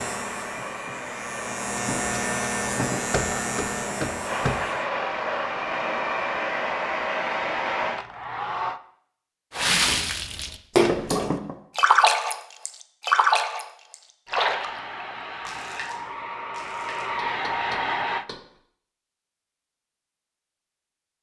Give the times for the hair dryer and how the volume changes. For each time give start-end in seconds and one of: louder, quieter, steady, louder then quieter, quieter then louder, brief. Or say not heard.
0.0-8.8 louder
14.2-18.2 louder.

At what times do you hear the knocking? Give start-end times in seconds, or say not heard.
3.1-4.5, 10.8-11.6, 17.1-18.4.